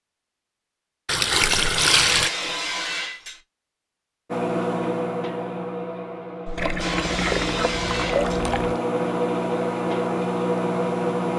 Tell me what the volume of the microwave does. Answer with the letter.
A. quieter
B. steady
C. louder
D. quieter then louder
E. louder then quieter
D.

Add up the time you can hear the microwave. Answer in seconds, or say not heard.
7 s.